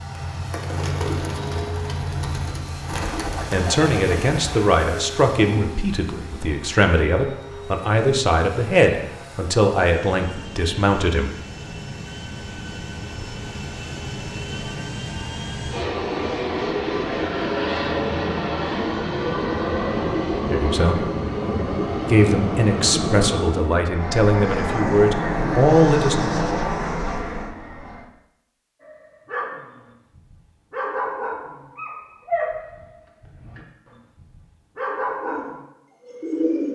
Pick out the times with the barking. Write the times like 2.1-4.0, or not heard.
28.8-35.6.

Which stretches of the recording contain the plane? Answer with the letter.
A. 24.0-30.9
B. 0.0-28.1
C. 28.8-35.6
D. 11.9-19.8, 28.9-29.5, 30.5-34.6
B.